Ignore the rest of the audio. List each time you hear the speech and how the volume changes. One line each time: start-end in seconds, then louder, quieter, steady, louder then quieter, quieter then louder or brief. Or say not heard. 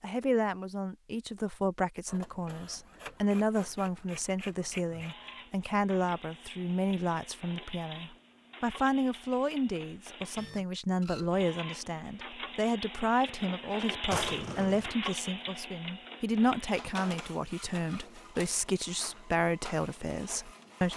0.0-20.9 steady.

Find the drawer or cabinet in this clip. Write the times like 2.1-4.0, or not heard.
14.1-14.9.